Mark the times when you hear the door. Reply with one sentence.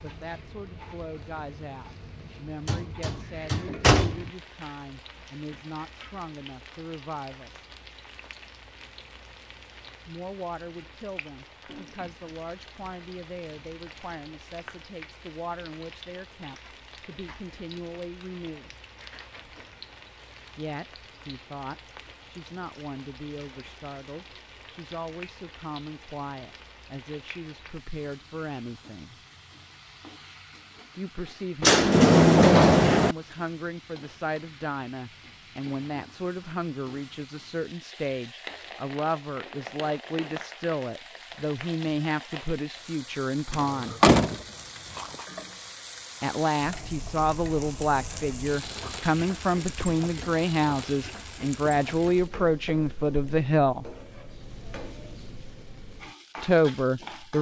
You can hear the door from 2.6 to 4.3 s, from 31.6 to 33.1 s and from 43.5 to 45.2 s.